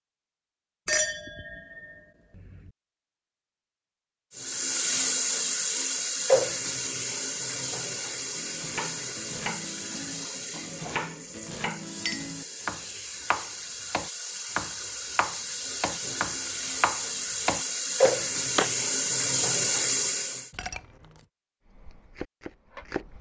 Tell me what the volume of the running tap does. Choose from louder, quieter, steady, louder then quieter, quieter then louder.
quieter then louder.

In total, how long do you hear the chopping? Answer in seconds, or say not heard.
12 s.